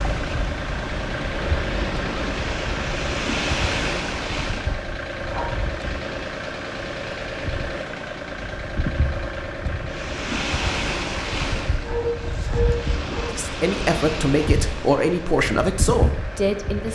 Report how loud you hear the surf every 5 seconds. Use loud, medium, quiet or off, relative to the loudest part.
loud, medium, loud, loud.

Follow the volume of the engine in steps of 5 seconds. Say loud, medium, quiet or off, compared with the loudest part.
loud, loud, medium, medium.